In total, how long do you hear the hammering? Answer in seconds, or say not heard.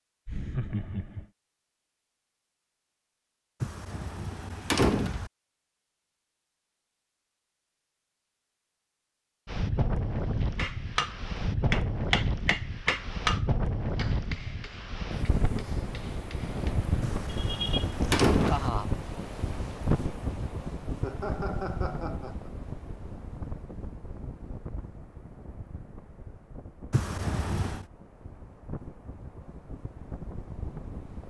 6 s.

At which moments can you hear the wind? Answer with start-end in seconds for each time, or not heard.
9.4-31.2.